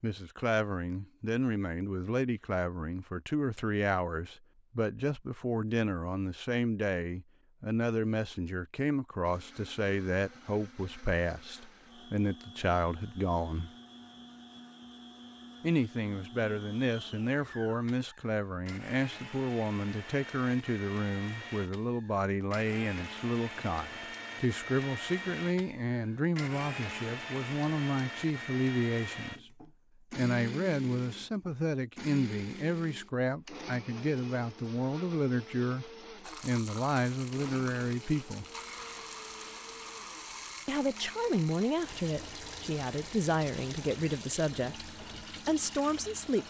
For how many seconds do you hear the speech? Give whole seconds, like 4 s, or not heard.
42 s.